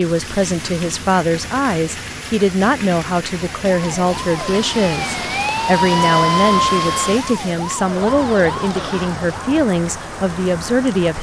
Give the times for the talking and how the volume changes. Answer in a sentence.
You can hear the talking from 0.0 to 11.1 s, at a steady volume.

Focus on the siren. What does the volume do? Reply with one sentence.
The loudness of the siren goes up, then down.